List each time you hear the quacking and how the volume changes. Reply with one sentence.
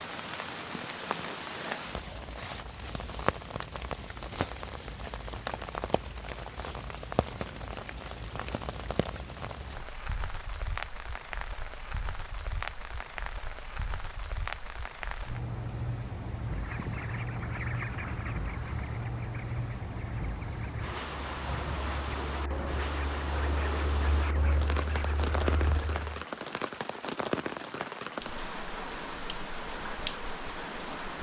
The quacking can be heard from 16.4 to 26.1 s, getting quieter then louder.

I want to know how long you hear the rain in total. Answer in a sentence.
The rain can be heard for 31 seconds in total.